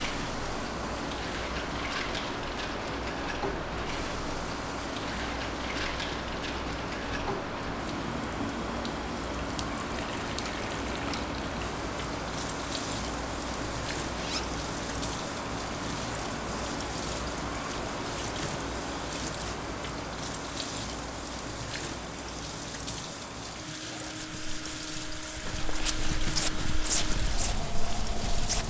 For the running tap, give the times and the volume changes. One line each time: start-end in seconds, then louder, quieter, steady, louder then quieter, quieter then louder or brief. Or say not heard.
0.0-28.6 steady.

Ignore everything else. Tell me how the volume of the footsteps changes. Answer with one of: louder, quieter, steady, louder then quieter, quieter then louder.
louder then quieter.